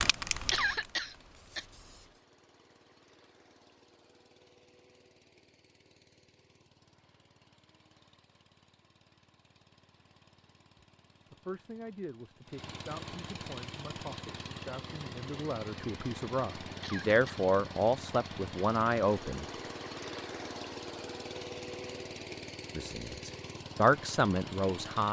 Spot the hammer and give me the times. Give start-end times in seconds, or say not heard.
not heard.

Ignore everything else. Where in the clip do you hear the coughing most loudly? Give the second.
1 s.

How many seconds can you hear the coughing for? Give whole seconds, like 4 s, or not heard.
2 s.